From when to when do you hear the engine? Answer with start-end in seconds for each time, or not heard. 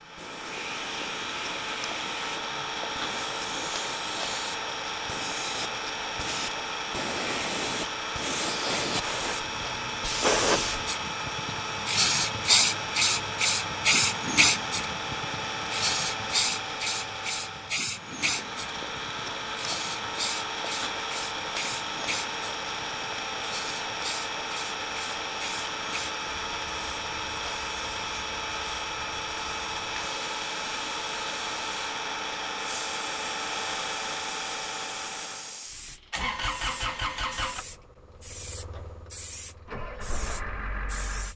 0.0-41.3.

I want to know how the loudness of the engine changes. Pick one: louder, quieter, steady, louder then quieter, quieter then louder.
steady.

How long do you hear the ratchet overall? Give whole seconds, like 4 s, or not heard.
not heard.